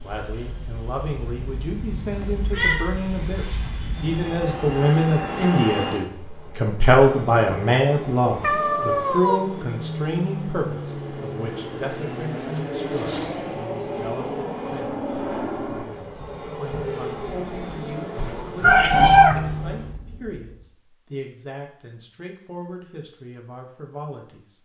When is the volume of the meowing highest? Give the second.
19 s.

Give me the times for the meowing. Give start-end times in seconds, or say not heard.
2.1-3.0, 8.4-9.4, 18.1-19.4.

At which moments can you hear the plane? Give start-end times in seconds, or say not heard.
0.0-20.0.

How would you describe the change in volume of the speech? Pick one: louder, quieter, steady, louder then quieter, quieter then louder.
louder then quieter.